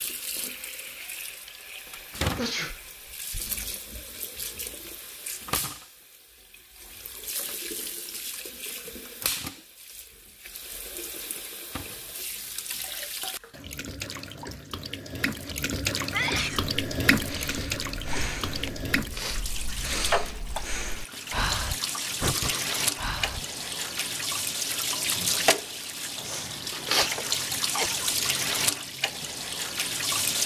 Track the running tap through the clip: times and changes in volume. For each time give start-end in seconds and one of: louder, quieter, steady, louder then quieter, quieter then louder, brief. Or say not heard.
0.0-30.4 louder.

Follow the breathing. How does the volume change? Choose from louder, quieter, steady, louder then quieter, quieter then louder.
quieter then louder.